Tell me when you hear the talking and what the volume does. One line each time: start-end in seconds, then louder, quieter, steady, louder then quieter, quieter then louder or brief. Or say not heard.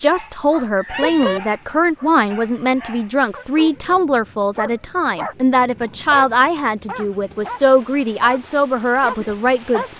0.0-9.9 steady.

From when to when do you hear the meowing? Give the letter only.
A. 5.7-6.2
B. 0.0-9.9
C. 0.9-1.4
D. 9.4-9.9
C.